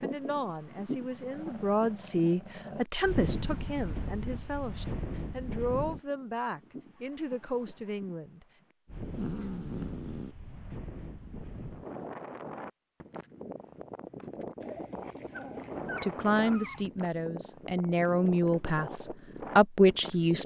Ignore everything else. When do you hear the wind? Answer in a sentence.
The wind can be heard from 0.0 to 20.4 s.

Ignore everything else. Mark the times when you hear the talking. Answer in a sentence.
The talking can be heard from 0.0 to 8.4 s and from 16.0 to 20.4 s.